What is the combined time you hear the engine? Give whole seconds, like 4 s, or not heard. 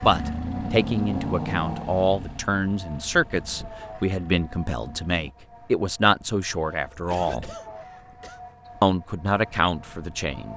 5 s.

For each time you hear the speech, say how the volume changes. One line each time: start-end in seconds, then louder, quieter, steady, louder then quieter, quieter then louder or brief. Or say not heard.
0.0-7.5 steady
8.8-10.5 brief.